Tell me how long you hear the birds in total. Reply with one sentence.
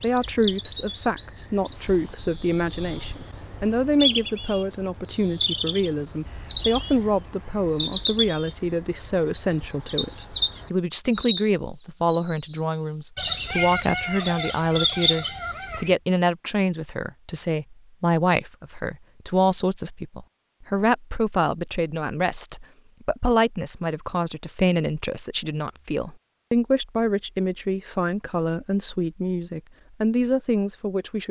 You can hear the birds for 16 seconds altogether.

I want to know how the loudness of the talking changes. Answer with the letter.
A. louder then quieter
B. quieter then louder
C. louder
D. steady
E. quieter
D.